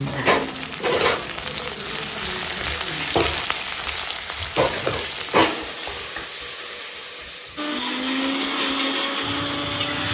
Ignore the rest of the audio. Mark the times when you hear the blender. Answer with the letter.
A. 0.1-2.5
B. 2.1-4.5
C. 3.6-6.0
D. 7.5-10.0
D.